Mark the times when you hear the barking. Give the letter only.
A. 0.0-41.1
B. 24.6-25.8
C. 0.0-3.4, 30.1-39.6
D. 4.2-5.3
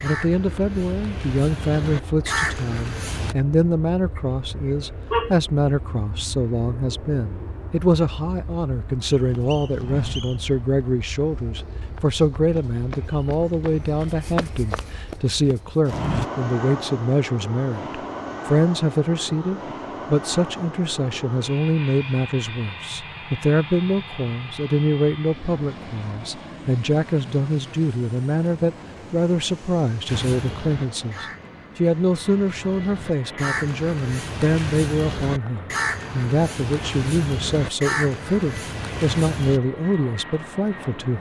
D.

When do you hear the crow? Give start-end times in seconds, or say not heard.
0.0-3.4, 30.1-39.6.